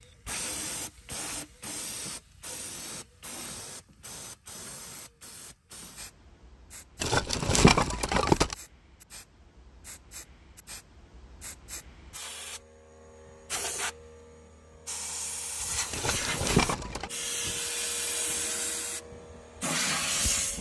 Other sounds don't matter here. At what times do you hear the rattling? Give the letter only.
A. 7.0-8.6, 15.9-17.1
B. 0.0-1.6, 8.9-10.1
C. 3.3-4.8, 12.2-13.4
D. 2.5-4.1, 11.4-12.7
A.